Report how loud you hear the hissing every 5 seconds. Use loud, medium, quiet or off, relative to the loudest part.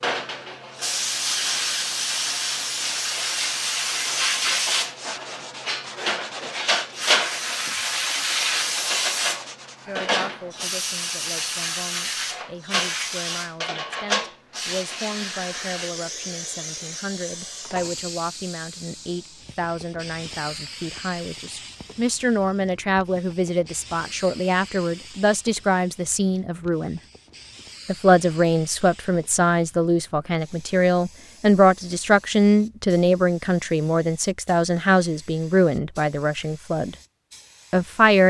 loud, loud, loud, medium, quiet, quiet, quiet, quiet.